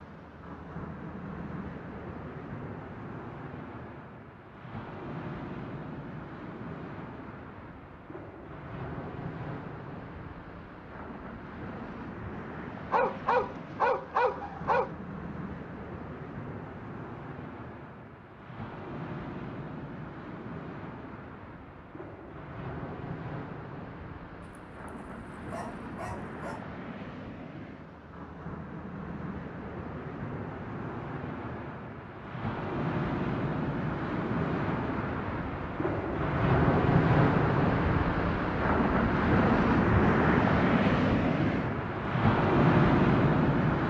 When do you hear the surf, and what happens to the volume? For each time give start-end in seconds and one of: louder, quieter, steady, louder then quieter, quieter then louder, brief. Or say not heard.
0.0-43.8 louder.